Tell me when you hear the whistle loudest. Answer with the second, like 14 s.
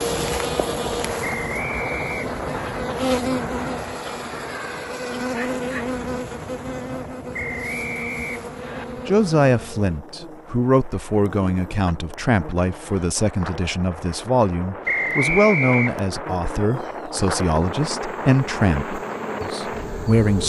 15 s.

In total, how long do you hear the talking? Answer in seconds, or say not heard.
11 s.